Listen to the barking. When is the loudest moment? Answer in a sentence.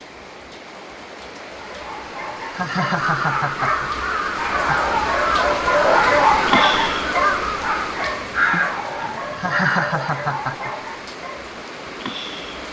The loudest moment of the barking is at 6 seconds.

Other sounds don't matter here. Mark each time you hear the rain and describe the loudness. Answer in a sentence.
You can hear the rain from 0.0 to 12.6 s, getting louder then quieter.